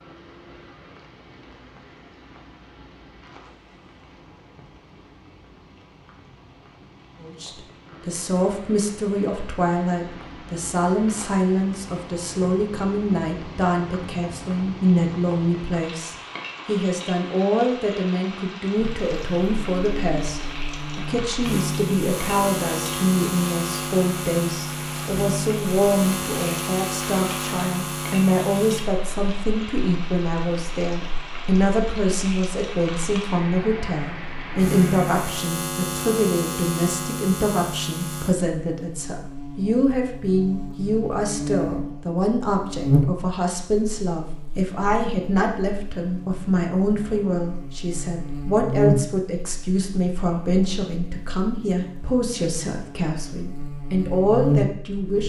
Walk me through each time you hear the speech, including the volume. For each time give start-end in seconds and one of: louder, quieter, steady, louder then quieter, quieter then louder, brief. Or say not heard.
7.2-55.2 steady.